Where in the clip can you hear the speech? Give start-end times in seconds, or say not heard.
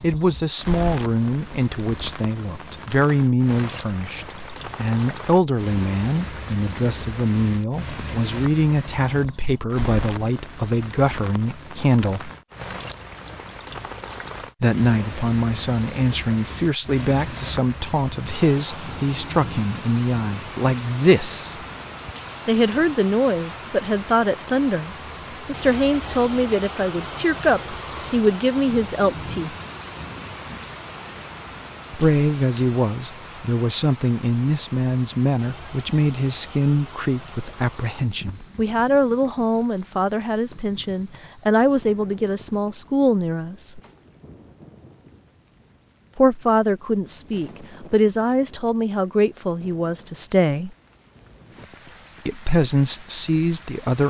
0.0-12.3, 14.6-21.6, 22.4-29.6, 31.9-43.8, 46.1-50.7, 52.2-54.0.